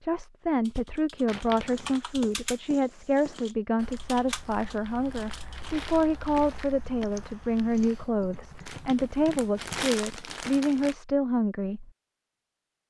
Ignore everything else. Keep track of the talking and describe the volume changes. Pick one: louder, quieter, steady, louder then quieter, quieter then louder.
steady.